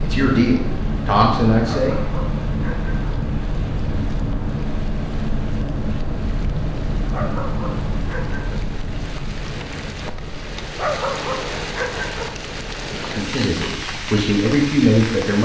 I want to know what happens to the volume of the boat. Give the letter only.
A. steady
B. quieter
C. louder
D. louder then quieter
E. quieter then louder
B.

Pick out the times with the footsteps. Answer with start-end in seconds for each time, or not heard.
not heard.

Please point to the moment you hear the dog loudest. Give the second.
11 s.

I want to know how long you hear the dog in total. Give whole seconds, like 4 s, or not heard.
5 s.